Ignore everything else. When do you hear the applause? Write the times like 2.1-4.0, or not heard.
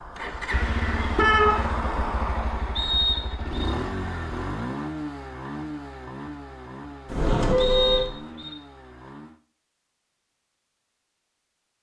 not heard.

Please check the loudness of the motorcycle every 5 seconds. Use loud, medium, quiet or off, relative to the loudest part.
loud, medium, off.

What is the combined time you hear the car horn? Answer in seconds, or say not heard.
2 s.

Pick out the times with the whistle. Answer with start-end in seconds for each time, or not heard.
2.8-3.5, 7.5-8.6.